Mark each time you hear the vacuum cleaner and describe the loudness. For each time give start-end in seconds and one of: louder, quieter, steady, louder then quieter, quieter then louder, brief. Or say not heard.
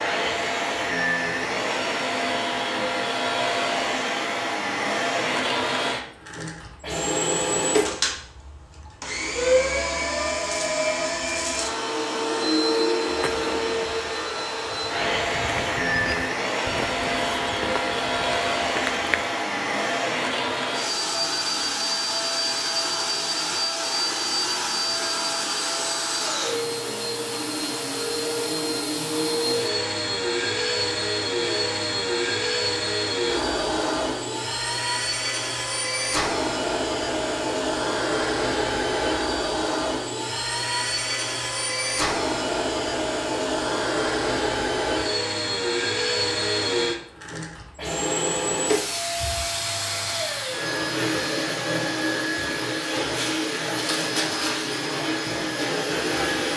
0.0-56.5 steady.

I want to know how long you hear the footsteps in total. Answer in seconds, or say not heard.
6 s.